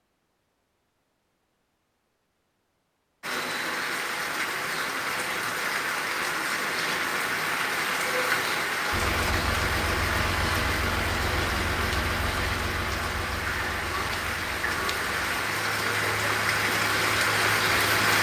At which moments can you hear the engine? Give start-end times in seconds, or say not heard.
8.9-18.1.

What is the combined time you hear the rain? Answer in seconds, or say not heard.
15 s.